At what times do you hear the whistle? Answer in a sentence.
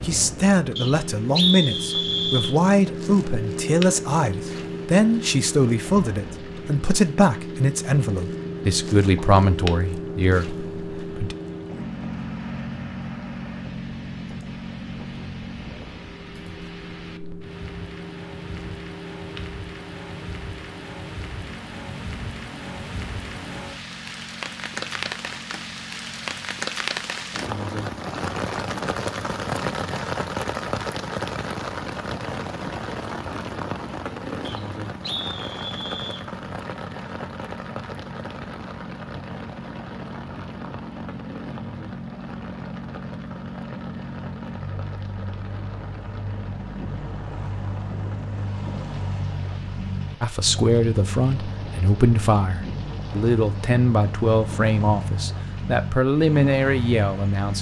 The whistle can be heard from 0.8 to 2.5 s and from 34.5 to 36.2 s.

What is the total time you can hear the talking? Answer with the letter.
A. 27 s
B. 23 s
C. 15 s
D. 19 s
D.